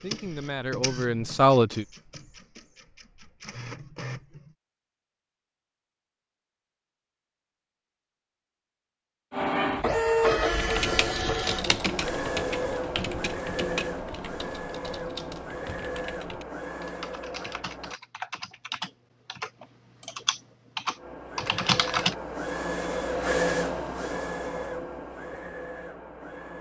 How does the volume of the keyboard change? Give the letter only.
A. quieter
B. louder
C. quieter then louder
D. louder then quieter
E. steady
C.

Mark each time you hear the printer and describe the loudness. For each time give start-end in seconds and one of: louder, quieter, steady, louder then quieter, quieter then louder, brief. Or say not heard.
0.0-4.5 quieter then louder
9.3-17.9 quieter
20.9-26.5 louder then quieter.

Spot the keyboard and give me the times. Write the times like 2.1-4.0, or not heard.
10.5-22.1.